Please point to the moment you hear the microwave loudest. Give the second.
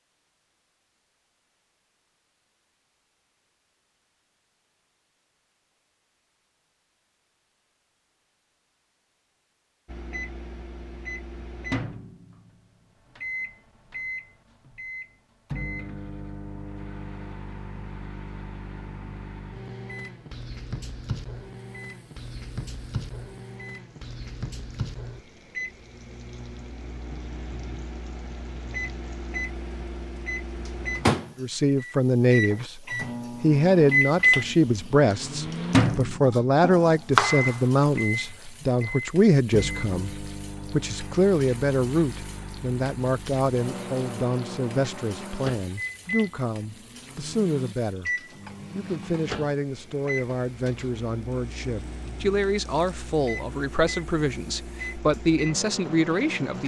34 s.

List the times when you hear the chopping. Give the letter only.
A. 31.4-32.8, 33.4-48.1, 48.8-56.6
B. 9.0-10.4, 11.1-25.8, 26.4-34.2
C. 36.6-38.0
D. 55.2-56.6
C.